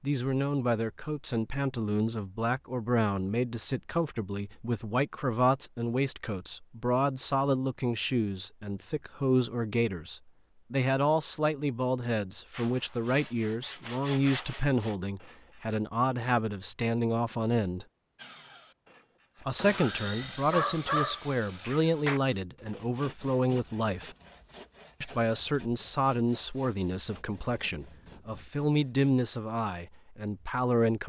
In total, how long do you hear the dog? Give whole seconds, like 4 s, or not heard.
2 s.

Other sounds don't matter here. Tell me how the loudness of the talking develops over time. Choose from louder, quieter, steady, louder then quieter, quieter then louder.
steady.